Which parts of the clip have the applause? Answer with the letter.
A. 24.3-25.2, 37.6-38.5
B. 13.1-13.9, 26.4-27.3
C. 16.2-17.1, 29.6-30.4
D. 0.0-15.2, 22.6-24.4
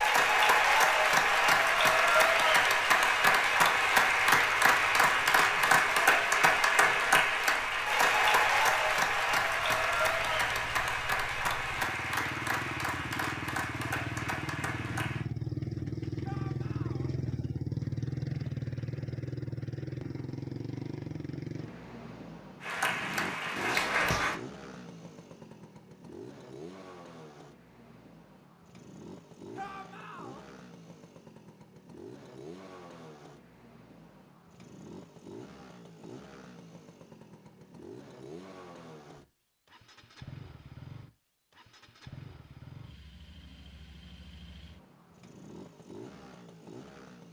D.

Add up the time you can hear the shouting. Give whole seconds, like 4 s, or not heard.
2 s.